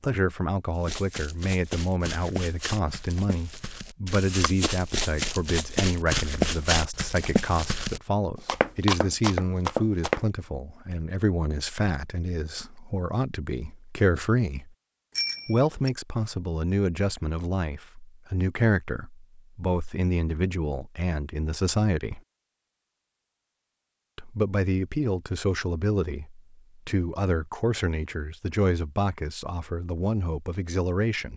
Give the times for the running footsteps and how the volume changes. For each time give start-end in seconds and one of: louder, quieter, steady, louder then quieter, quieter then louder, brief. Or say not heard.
0.8-10.2 louder.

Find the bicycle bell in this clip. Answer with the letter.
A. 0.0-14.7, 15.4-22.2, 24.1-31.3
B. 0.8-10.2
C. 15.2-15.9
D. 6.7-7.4
C.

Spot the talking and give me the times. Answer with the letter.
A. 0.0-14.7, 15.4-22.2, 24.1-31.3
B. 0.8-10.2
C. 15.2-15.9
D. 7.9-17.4
A.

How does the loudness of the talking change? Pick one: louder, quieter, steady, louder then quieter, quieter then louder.
steady.